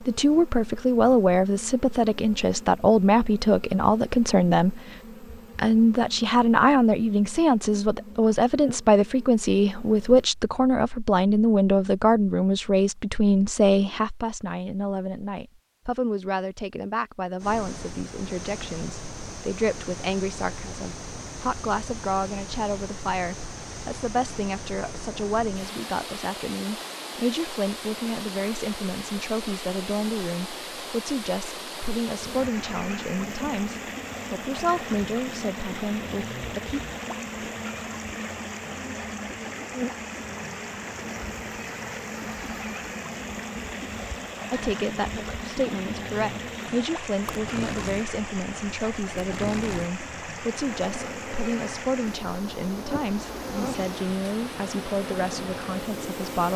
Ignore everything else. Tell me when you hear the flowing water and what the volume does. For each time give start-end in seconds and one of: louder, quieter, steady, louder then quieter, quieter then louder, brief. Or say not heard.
17.4-56.5 steady.